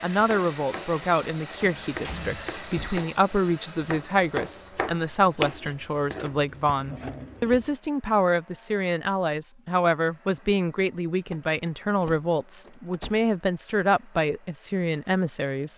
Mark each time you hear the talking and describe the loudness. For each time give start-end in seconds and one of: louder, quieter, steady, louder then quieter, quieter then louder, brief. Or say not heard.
0.0-15.7 steady.